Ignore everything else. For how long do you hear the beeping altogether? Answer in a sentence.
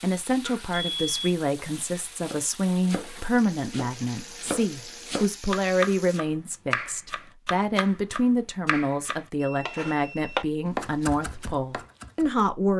You can hear the beeping for 2 seconds altogether.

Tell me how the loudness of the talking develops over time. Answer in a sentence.
The volume of the talking stays about the same.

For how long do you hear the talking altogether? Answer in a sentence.
The talking can be heard for 13 seconds in total.